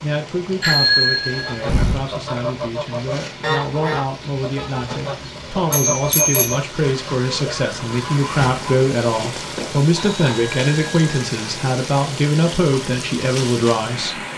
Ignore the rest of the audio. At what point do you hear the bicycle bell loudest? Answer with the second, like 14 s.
1 s.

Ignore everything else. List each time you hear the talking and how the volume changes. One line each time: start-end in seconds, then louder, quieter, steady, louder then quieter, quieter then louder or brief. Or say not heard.
0.0-14.2 louder.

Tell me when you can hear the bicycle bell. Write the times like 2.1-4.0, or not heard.
0.6-2.0, 5.7-6.6, 9.9-11.2.